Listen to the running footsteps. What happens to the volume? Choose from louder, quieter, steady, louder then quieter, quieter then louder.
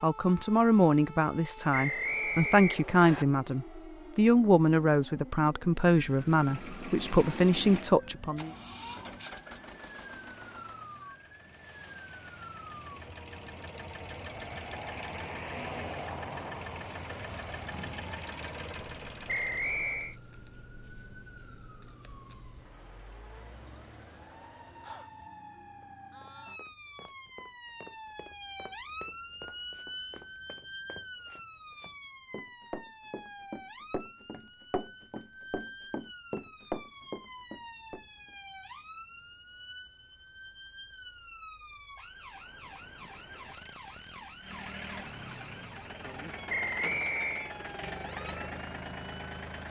louder.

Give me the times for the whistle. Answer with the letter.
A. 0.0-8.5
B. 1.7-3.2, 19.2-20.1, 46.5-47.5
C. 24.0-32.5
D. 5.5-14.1
B.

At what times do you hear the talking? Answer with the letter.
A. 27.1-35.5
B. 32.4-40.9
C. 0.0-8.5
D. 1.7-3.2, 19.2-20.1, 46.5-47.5
C.